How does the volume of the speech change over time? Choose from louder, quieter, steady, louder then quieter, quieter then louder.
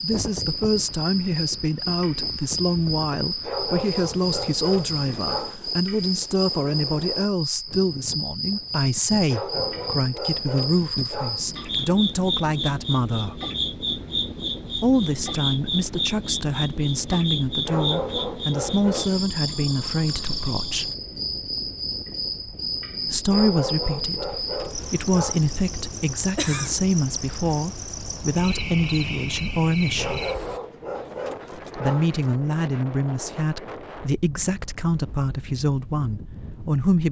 steady.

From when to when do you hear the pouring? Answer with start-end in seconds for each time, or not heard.
not heard.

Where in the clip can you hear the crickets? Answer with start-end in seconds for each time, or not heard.
0.0-30.6.